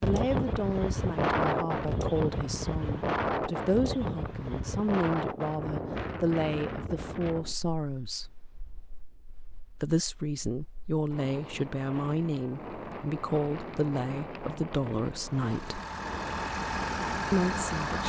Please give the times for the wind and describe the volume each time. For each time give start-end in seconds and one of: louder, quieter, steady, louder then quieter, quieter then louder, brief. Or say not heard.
0.0-18.0 quieter then louder.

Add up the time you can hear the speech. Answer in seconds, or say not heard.
15 s.